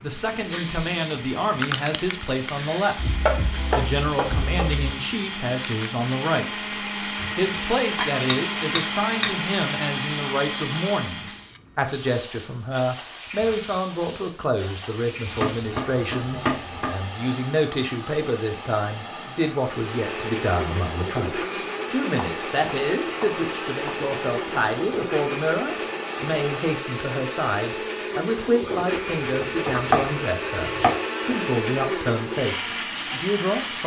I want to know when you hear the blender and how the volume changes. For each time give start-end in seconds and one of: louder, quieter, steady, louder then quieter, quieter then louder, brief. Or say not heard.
0.0-11.5 louder
19.6-33.8 steady.